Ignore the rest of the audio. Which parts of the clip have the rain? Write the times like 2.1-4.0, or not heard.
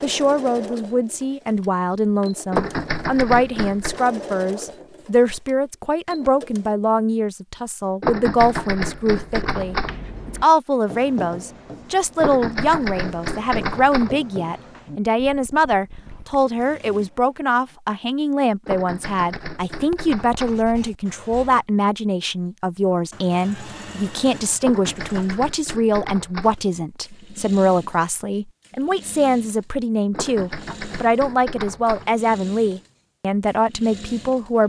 not heard.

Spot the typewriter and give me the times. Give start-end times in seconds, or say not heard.
2.5-4.0, 8.0-9.9, 12.2-14.2, 18.6-20.6, 24.6-26.6, 30.1-32.1.